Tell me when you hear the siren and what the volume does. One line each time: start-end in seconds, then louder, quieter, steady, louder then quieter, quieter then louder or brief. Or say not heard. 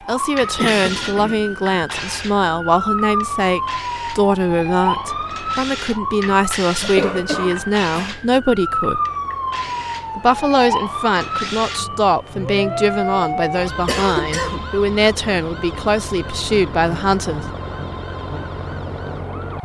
0.0-19.6 quieter.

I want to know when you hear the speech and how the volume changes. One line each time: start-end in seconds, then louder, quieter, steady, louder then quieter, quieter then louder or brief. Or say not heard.
0.1-9.0 steady
10.2-17.4 steady.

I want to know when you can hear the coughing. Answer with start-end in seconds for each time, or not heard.
0.4-1.8, 6.8-8.2, 13.8-14.7.